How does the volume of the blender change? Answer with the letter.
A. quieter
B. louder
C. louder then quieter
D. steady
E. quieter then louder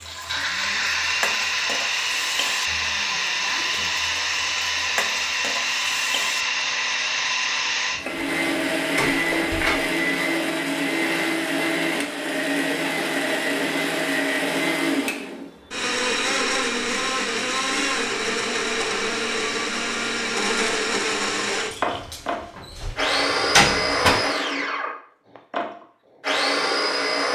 D.